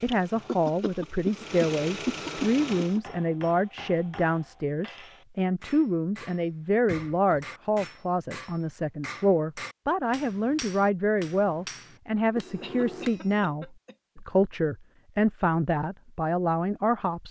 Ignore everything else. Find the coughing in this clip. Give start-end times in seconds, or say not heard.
0.5-3.0, 6.8-7.5, 12.6-14.2.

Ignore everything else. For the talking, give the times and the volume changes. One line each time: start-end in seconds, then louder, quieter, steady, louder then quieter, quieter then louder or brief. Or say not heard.
0.0-17.2 steady.